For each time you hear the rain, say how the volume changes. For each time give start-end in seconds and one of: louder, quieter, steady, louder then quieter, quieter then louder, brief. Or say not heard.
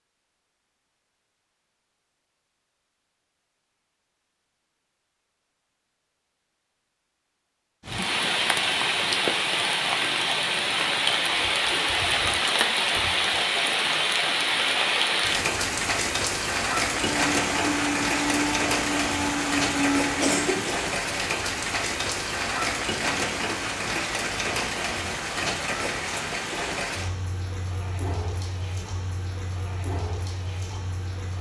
7.8-31.3 quieter.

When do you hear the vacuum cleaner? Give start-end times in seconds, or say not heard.
17.1-20.4.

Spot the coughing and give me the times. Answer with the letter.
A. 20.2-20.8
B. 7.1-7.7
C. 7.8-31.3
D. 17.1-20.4
A.